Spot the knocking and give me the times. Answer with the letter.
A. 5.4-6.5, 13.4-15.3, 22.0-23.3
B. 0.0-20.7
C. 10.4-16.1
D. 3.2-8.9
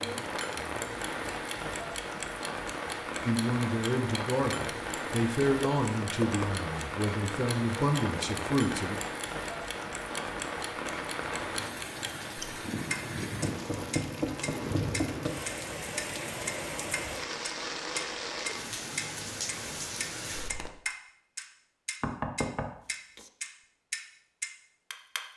A.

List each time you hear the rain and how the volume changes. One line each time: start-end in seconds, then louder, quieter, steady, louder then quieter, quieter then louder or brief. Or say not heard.
0.0-20.7 steady.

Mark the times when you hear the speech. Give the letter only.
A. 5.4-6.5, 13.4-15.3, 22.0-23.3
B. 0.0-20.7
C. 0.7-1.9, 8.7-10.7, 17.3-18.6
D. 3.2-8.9
D.